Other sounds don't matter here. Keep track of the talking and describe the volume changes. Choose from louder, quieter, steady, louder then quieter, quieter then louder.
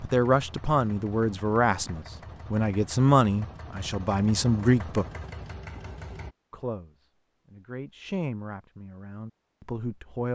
quieter.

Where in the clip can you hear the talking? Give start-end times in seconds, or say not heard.
0.0-5.0, 6.5-10.3.